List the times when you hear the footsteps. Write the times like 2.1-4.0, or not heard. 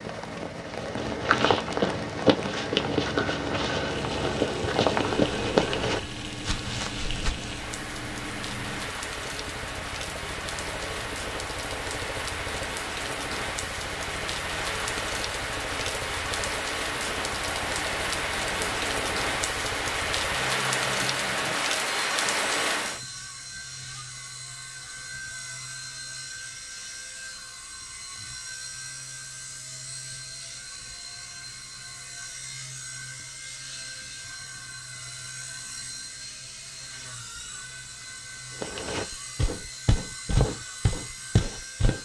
0.6-7.5, 38.6-42.0.